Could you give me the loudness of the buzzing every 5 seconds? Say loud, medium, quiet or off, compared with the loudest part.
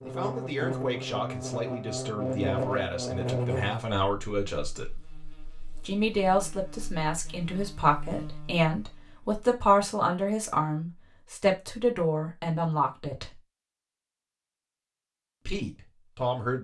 loud, quiet, off, off.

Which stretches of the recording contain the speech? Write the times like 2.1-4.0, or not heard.
0.0-4.9, 5.8-13.3, 15.4-16.6.